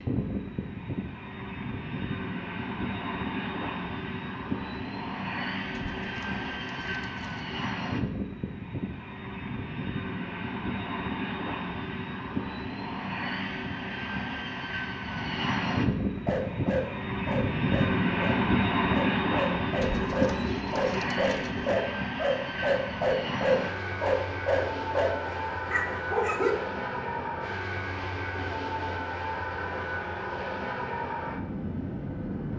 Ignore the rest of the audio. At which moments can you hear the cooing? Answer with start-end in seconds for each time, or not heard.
5.7-7.5, 19.8-21.8.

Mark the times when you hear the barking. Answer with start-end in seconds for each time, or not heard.
16.2-26.6.